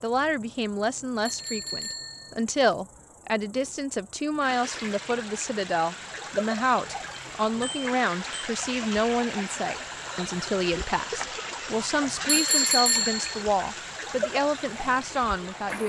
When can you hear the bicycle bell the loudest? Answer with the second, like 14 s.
13 s.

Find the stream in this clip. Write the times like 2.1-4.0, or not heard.
4.4-15.8.